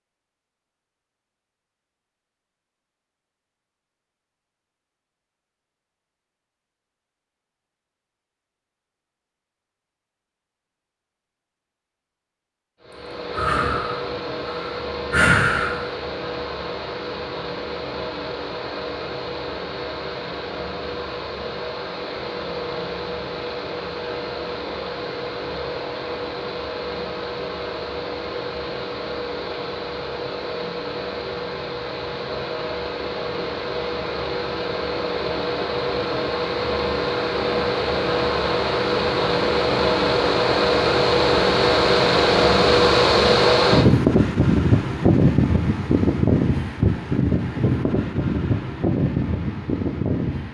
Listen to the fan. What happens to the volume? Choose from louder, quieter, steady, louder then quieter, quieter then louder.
louder.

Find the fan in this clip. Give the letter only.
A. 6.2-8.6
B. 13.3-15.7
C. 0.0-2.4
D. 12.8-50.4
D.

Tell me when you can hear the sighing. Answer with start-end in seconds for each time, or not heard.
13.3-15.7.